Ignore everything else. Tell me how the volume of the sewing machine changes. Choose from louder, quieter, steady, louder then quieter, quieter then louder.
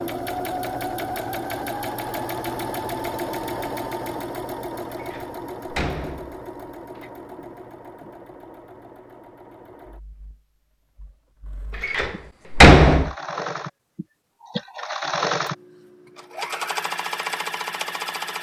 quieter then louder.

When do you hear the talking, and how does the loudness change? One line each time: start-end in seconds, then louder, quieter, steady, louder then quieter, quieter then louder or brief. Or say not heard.
not heard.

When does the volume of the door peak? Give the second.
13 s.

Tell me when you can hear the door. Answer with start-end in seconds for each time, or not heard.
5.0-7.1, 11.8-13.1.